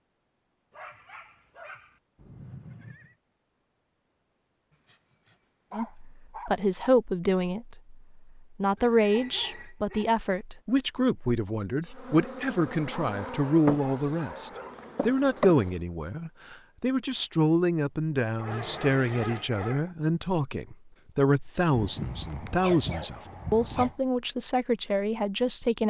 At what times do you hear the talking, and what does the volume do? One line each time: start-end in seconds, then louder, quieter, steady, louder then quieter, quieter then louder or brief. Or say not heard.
5.7-25.8 steady.